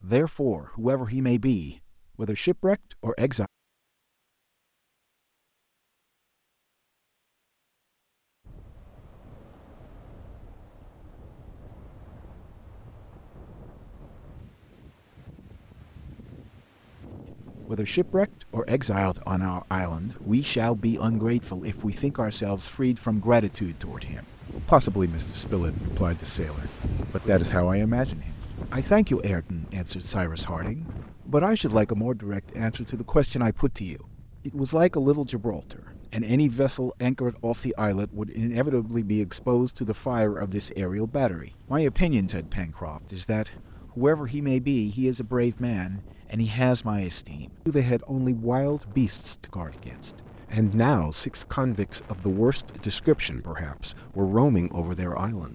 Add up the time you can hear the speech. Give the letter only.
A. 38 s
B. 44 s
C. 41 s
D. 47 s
C.